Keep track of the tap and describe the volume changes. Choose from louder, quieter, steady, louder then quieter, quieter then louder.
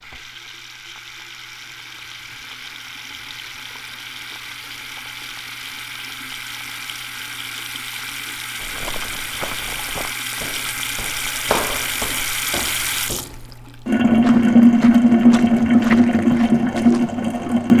louder.